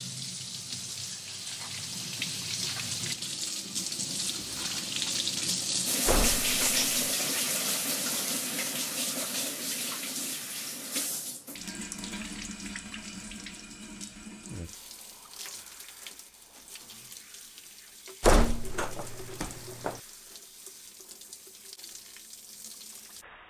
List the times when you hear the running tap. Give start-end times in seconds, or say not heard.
0.0-23.4.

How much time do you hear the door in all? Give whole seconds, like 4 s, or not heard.
3 s.